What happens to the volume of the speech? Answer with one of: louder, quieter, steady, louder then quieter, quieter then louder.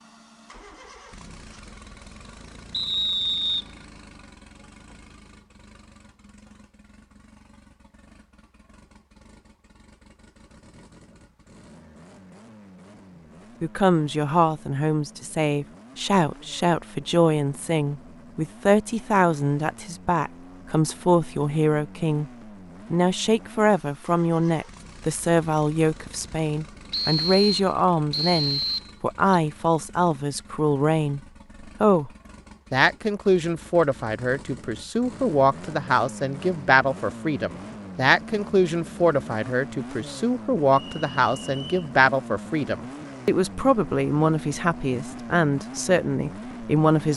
steady.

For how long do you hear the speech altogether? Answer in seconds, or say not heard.
32 s.